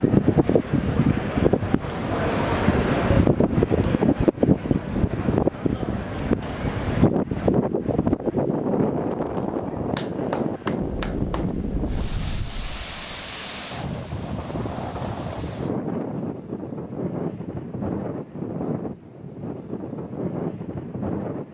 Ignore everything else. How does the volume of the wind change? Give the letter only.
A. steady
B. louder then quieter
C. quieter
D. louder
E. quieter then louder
C.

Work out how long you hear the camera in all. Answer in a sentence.
The camera can be heard for 2 seconds in total.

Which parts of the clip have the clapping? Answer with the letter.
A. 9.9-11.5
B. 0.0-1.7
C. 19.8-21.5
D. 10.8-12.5
A.